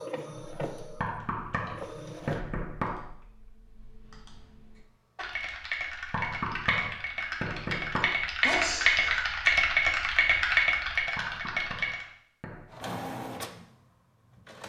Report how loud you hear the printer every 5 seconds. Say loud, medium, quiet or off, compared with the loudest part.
loud, off, loud.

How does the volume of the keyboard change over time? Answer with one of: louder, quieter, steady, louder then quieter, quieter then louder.
louder.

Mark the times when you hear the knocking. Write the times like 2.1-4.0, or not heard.
1.0-3.0, 6.1-8.1, 11.2-12.7.